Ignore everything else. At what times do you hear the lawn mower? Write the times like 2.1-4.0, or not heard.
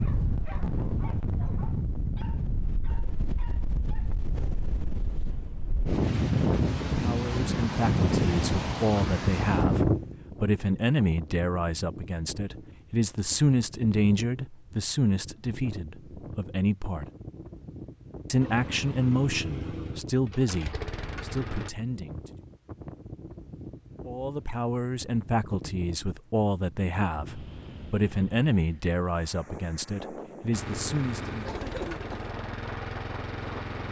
18.4-21.7, 30.5-33.8.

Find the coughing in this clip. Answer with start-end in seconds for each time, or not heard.
31.4-32.4.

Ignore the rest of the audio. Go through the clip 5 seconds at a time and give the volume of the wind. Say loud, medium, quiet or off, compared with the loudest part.
medium, loud, quiet, quiet, quiet, quiet, quiet.